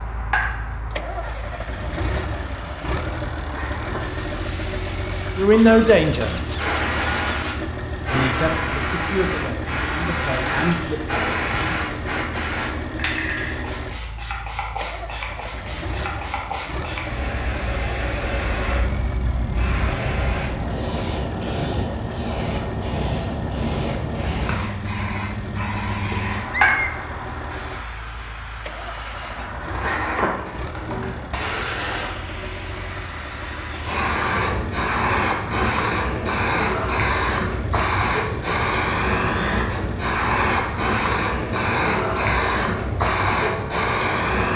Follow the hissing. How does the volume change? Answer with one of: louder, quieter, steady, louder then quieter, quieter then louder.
louder.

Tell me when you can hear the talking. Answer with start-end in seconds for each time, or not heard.
5.3-6.3, 8.1-11.0.